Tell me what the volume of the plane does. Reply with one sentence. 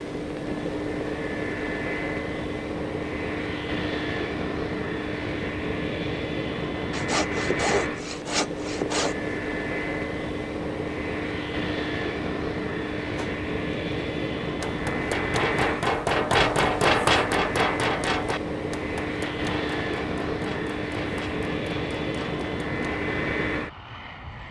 The volume of the plane stays about the same.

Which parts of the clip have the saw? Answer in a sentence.
You can hear the saw from 6.9 to 9.2 s.